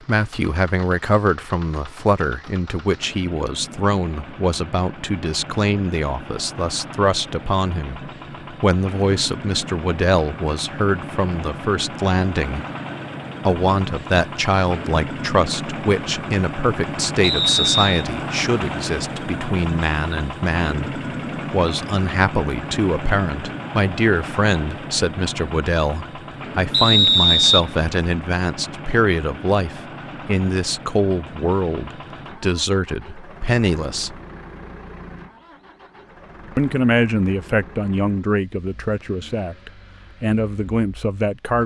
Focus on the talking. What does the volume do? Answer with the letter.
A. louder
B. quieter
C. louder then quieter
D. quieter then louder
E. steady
E.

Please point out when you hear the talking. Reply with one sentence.
The talking can be heard from 0.1 to 12.7 s, from 13.4 to 34.1 s and from 36.5 to 41.6 s.